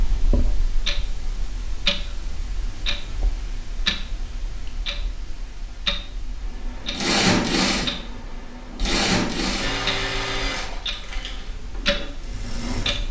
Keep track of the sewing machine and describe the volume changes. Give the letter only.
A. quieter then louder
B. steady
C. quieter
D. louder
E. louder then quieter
C.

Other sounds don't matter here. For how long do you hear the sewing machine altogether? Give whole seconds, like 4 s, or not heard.
6 s.